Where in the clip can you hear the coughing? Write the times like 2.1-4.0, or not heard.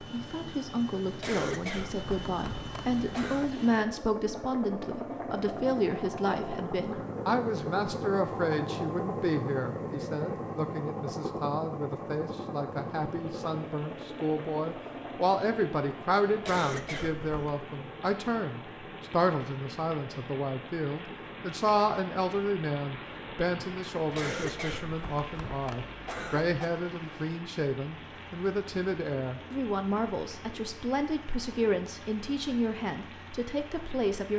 1.2-3.5, 16.4-17.6, 24.1-26.6.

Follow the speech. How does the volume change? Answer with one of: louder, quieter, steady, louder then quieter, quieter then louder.
steady.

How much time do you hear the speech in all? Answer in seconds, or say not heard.
34 s.